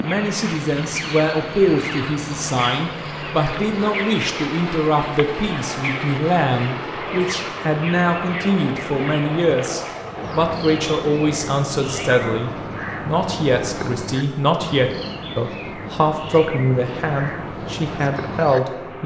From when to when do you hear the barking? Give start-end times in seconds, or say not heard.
not heard.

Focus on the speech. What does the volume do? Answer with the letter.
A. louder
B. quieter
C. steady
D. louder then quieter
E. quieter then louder
C.